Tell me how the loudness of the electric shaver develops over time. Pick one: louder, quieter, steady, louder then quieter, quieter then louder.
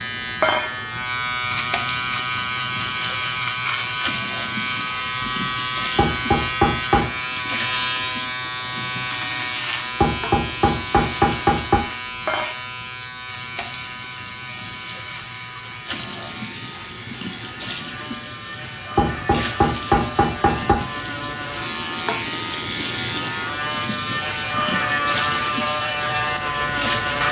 quieter then louder.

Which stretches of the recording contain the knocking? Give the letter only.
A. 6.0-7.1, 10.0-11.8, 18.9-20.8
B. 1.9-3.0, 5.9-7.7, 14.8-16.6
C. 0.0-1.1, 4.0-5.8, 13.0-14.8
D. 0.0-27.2
A.